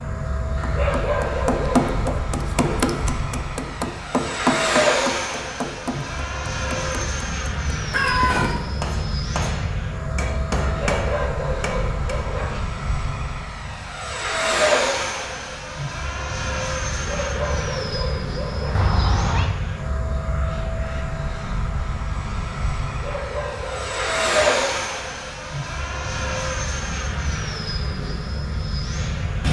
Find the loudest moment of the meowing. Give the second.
8 s.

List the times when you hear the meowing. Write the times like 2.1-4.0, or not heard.
7.9-8.7, 18.8-19.5.